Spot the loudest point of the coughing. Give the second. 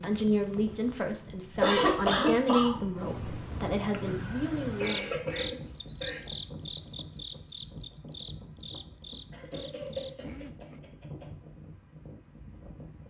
2 s.